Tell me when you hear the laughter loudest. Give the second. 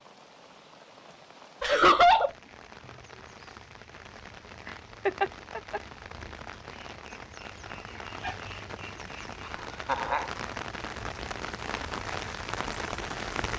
2 s.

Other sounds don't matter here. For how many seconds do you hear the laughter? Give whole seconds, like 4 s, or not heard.
3 s.